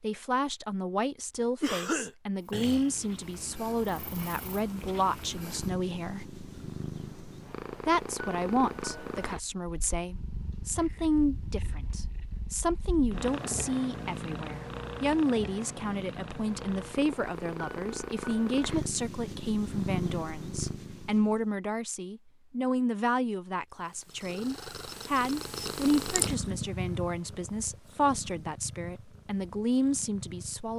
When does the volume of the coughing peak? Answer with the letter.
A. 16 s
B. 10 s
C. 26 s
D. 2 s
D.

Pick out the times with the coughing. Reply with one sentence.
The coughing can be heard from 1.6 to 3.0 s.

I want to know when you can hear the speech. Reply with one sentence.
You can hear the speech from 0.0 to 6.2 s and from 7.8 to 30.7 s.